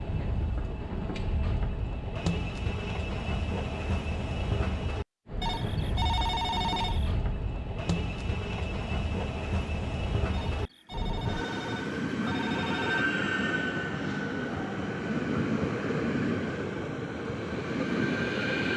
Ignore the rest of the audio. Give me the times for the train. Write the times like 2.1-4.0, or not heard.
0.0-18.7.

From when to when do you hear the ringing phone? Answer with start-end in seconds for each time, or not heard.
5.4-7.2, 10.3-13.1.